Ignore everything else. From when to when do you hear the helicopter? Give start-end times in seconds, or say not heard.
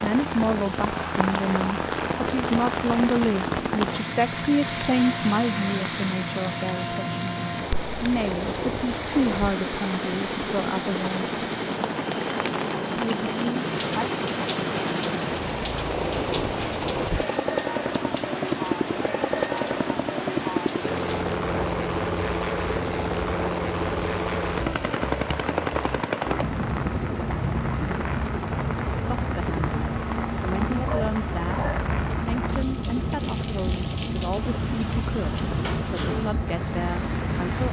0.0-37.6.